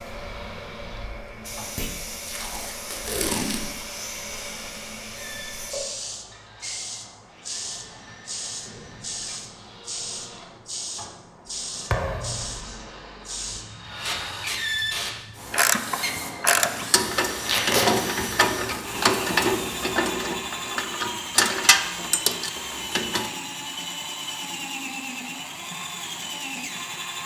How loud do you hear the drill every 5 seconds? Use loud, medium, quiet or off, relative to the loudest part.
quiet, quiet, loud, loud, loud, loud.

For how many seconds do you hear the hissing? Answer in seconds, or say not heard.
20 s.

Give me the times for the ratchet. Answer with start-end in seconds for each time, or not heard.
15.5-23.3.